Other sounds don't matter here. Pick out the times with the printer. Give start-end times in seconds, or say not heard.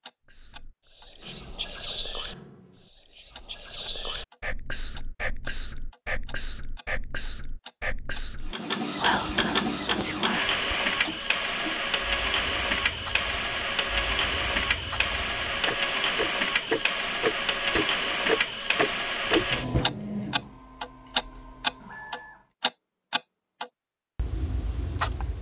8.4-22.4.